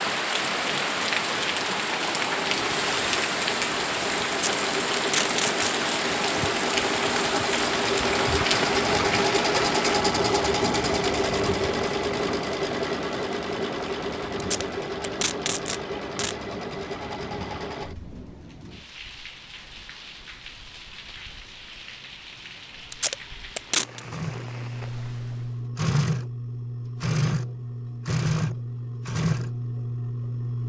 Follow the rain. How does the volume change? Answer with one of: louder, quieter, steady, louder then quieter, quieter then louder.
quieter.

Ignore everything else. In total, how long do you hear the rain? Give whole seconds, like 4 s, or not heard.
26 s.